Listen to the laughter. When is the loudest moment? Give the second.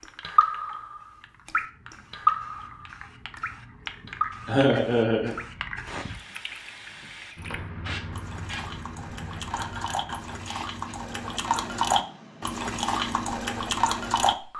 5 s.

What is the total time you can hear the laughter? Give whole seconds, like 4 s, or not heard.
2 s.